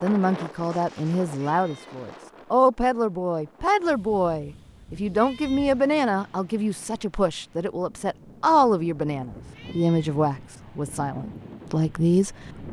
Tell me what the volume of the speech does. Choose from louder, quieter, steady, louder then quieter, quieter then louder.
steady.